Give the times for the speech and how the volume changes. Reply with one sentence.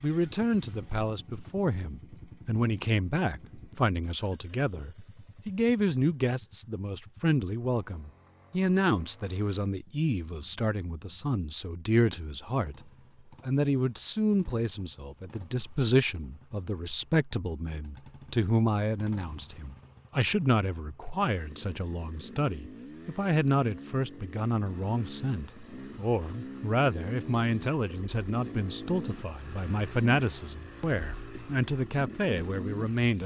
You can hear the speech from 0.0 to 33.2 s, at a steady volume.